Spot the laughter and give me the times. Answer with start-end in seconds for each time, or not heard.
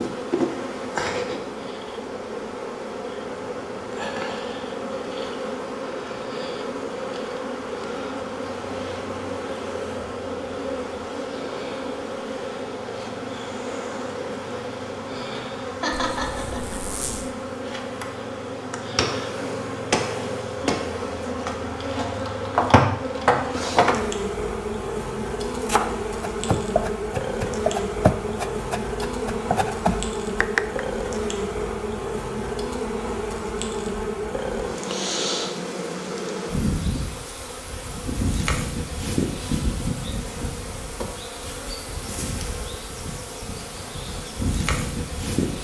15.8-16.9.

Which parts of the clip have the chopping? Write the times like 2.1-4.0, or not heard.
25.4-30.9.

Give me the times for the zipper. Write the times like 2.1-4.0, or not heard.
16.1-17.3.